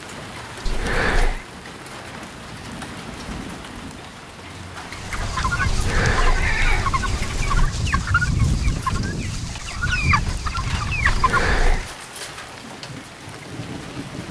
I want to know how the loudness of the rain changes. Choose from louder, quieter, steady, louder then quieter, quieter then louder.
steady.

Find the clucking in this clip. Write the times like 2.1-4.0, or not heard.
4.9-11.9.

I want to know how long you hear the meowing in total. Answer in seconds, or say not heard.
4 s.